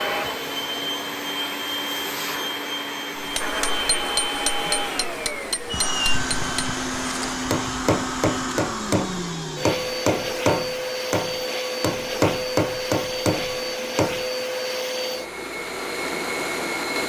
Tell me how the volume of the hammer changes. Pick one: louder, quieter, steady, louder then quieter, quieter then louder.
louder.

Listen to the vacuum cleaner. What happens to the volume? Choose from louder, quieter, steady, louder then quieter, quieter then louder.
steady.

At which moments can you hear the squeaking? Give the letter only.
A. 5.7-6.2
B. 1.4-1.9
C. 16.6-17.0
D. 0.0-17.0
A.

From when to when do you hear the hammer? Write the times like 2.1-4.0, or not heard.
3.1-14.4.